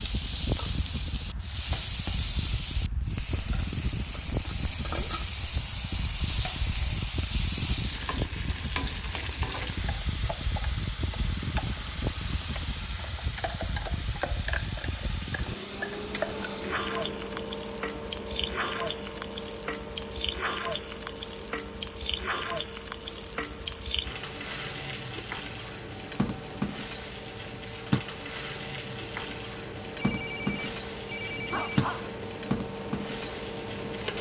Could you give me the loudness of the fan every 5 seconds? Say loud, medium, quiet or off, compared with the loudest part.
loud, loud, loud, loud, medium, medium, loud.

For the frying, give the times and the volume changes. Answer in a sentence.
The frying can be heard from 0.0 to 34.1 s, at a steady volume.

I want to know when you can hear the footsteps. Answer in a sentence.
The footsteps can't be heard in this clip.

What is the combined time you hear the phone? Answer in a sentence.
The phone can be heard for 2 seconds in total.